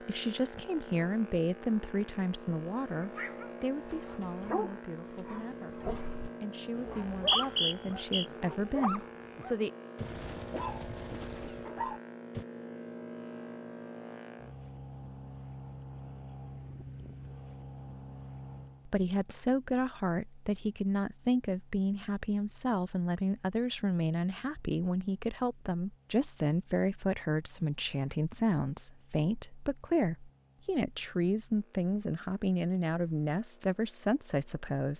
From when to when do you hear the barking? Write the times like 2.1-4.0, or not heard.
3.0-12.4.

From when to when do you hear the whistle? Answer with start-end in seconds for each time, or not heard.
7.0-8.2.